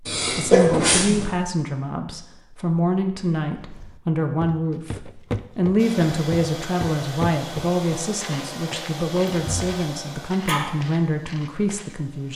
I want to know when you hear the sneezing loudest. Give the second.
1 s.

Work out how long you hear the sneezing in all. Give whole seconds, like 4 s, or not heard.
3 s.